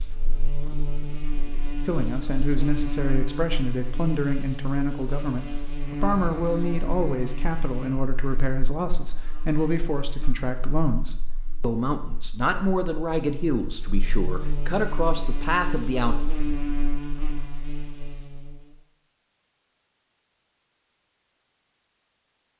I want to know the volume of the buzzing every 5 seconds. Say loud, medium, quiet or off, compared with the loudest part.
loud, loud, medium, loud, off.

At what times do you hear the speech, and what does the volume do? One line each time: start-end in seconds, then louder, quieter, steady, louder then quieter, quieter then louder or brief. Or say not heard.
1.9-16.1 steady.